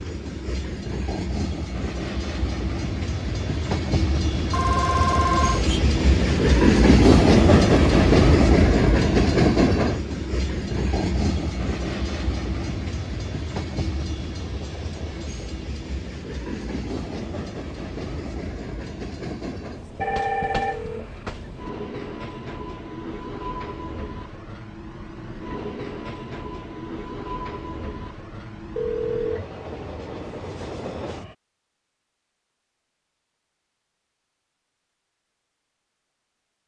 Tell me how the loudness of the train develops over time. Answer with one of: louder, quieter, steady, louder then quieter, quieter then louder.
louder then quieter.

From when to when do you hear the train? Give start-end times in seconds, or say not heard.
0.0-31.4.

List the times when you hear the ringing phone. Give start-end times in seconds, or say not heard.
4.5-5.8, 20.0-21.2, 28.8-29.4.